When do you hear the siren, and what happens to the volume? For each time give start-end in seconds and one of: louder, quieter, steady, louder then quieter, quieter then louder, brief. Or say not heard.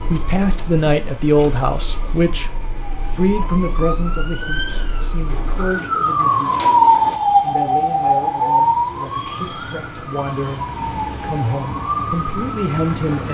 0.0-13.2 louder then quieter.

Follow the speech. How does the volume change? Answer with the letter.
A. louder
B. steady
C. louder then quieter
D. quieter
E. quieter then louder
E.